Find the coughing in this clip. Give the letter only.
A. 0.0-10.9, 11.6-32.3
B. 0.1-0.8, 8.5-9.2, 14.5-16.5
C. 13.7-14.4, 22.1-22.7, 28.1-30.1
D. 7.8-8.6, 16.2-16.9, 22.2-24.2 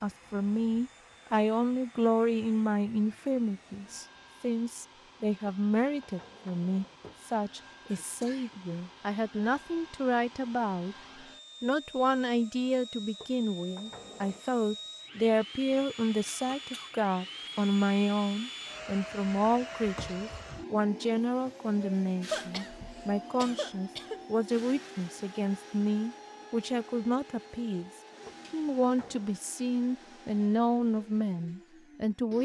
D.